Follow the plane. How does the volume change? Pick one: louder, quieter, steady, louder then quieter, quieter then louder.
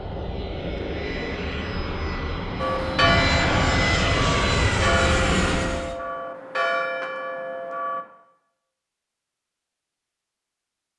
louder.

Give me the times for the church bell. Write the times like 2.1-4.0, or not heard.
2.6-8.1.